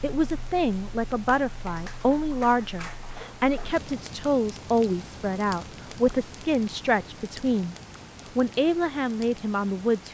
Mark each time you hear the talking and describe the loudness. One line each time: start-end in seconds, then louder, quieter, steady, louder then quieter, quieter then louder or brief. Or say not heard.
0.0-7.8 steady
8.3-10.0 brief.